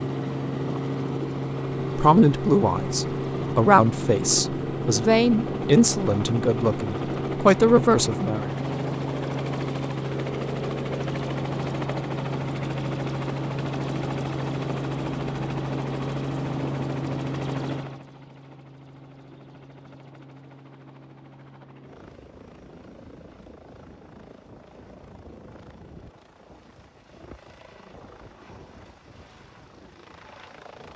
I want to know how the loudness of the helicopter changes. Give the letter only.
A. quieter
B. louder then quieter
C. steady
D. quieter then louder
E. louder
A.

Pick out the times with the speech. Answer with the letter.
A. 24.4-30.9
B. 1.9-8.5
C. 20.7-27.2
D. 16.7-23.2
B.